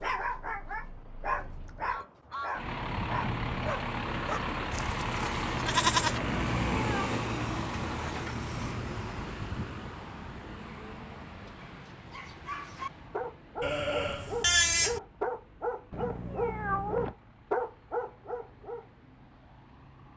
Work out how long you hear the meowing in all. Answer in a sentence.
You can hear the meowing for 2 seconds altogether.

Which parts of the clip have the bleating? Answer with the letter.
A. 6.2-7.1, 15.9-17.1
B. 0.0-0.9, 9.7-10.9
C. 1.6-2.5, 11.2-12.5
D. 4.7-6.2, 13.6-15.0
D.